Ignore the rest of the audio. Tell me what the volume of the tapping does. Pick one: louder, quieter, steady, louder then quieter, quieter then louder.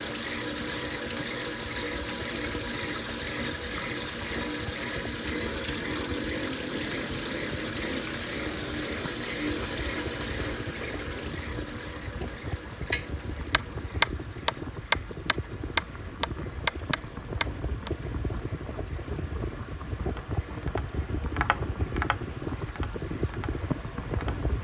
quieter.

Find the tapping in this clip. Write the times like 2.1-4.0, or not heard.
12.9-17.9, 20.1-24.5.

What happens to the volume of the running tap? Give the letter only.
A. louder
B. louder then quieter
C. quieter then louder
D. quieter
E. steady
D.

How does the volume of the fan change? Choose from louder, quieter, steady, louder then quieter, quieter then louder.
louder.